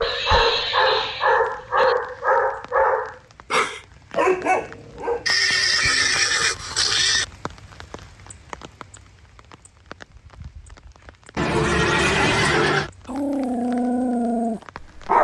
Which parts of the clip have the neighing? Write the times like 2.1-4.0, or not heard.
0.0-1.9, 5.2-7.2, 11.3-12.9.